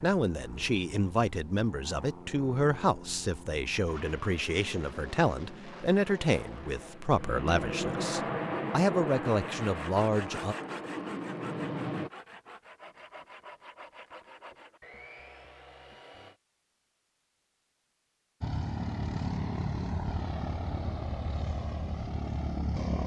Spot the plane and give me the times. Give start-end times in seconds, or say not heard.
0.0-12.1, 18.4-23.0.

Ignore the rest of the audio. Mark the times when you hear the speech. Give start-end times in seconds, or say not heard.
0.0-10.6.